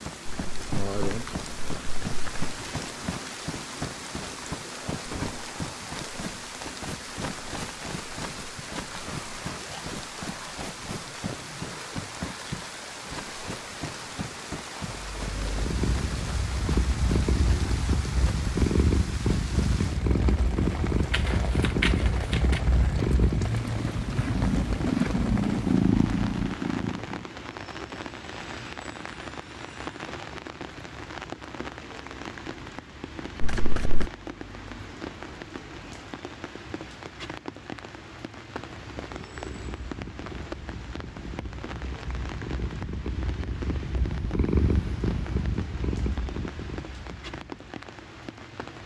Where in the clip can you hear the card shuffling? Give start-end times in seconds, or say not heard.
0.2-2.5, 21.1-22.6, 33.4-34.1.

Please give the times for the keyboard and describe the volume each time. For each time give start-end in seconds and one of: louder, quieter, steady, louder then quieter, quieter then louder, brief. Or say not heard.
not heard.